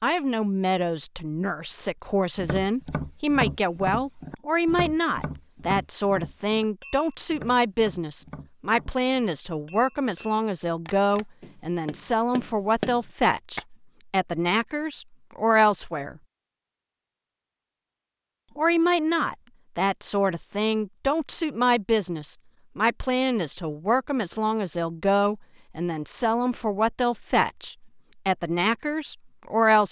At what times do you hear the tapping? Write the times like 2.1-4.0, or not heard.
2.4-13.7.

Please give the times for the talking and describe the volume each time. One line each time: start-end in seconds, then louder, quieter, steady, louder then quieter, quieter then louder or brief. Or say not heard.
0.0-16.2 steady
18.6-29.8 steady.